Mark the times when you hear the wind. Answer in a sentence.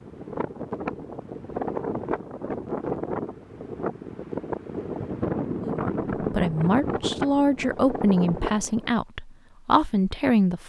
The wind can be heard from 0.0 to 8.9 s.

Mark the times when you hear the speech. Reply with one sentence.
You can hear the speech from 5.6 to 10.6 s.